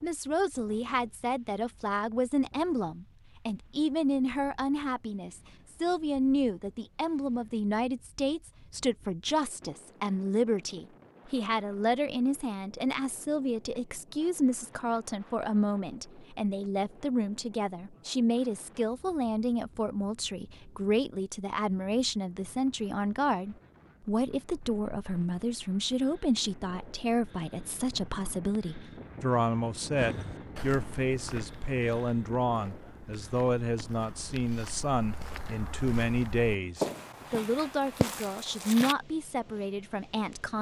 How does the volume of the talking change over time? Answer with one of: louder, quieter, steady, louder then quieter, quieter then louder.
steady.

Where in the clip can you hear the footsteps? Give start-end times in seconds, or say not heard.
29.9-39.0.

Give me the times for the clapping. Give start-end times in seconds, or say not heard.
not heard.